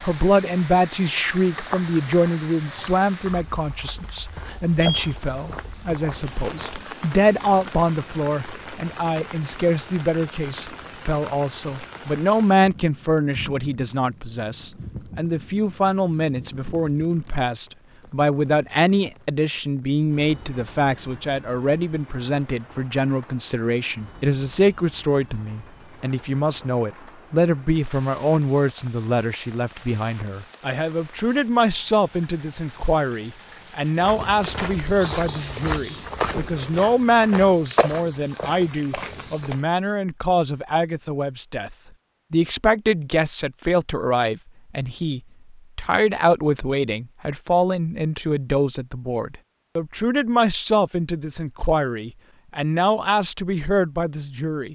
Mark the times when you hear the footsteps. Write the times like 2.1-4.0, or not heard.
1.5-6.9, 34.0-39.6.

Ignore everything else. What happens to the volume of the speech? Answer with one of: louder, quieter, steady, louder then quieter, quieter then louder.
steady.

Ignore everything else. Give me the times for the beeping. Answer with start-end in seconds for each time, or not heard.
4.8-6.0.